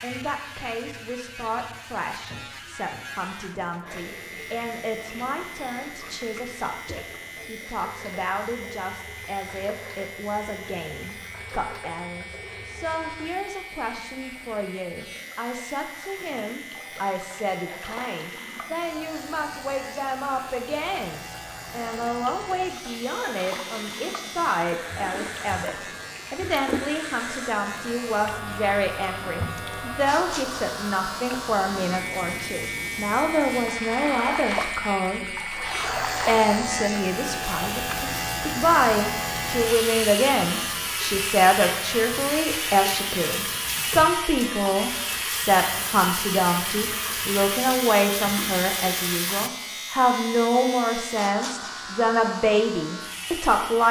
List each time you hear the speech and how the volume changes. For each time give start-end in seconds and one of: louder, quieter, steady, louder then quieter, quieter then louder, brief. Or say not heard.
0.0-35.4 louder
36.2-53.8 steady.